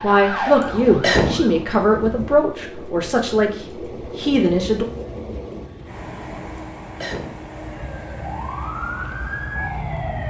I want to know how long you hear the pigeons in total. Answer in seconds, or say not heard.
not heard.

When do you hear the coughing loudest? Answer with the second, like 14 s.
1 s.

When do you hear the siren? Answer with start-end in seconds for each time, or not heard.
0.0-1.6, 7.5-10.2.